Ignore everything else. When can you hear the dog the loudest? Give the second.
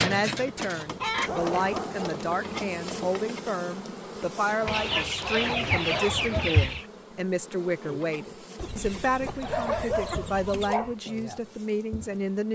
10 s.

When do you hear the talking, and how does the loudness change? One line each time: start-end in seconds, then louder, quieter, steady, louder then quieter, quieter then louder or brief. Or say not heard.
0.0-12.5 steady.